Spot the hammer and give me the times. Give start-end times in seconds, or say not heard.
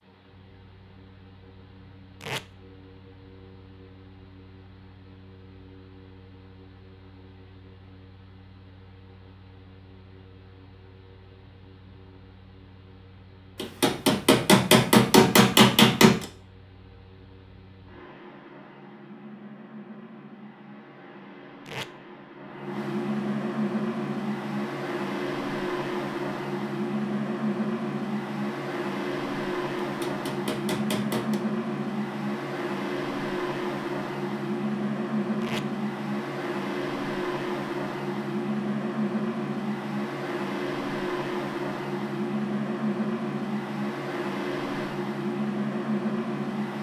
13.6-16.2, 29.8-31.4.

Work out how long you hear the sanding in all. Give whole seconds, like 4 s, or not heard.
not heard.